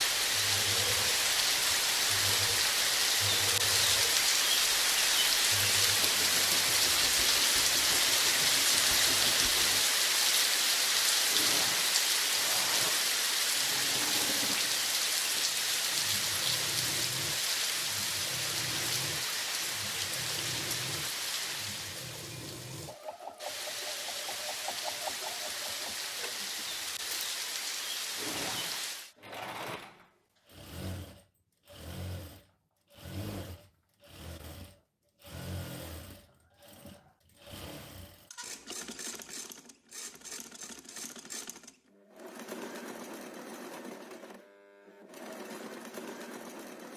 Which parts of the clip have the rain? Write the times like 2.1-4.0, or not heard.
0.0-29.1.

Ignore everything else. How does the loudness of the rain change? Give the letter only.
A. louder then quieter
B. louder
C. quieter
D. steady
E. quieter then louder
C.